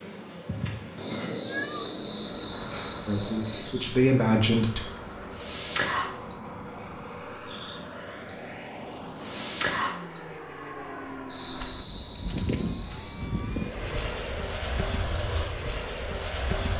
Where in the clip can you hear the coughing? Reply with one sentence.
The coughing can't be heard in this clip.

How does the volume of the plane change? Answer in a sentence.
The loudness of the plane goes up.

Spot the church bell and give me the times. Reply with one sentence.
The church bell can't be heard in this clip.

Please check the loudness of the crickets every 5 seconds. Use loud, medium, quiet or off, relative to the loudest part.
loud, loud, medium, off.